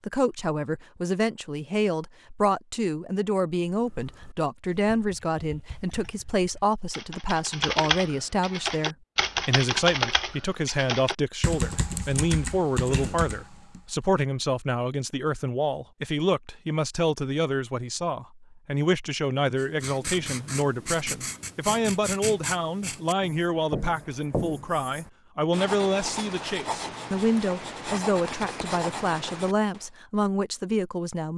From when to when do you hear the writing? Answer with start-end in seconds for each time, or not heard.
19.6-29.9.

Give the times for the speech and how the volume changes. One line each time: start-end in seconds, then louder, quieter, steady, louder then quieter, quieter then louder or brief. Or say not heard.
0.1-31.3 steady.